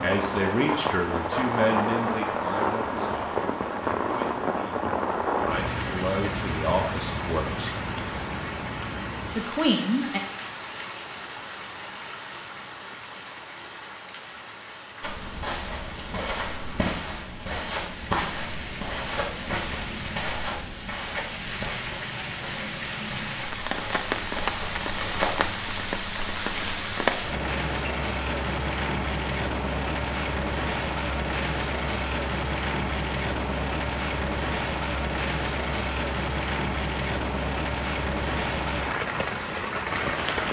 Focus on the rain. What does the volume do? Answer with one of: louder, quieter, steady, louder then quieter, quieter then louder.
quieter then louder.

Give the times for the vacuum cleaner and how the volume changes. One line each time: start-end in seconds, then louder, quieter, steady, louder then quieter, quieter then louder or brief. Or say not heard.
not heard.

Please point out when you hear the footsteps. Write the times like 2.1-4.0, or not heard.
15.0-25.4.